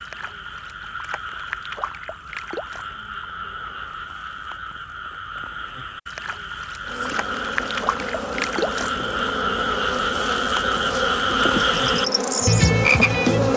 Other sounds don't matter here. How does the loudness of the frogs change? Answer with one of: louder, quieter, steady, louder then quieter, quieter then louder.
louder.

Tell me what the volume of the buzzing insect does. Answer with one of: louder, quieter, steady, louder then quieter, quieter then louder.
louder.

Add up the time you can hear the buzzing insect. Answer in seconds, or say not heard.
7 s.